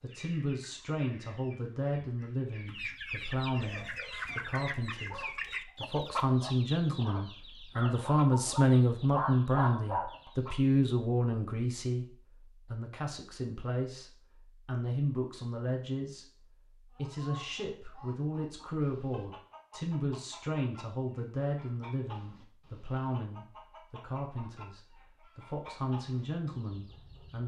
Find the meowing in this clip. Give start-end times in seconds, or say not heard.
not heard.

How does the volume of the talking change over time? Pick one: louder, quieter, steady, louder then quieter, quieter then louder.
louder then quieter.